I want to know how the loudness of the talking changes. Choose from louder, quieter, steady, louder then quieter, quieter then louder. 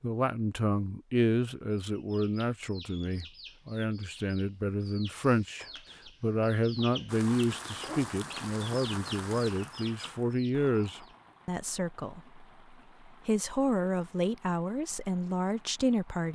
steady.